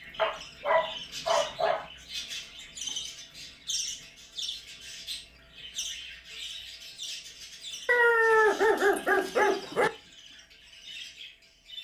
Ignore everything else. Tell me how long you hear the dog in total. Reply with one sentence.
You can hear the dog for 4 seconds altogether.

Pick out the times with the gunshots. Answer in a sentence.
The gunshots can't be heard in this clip.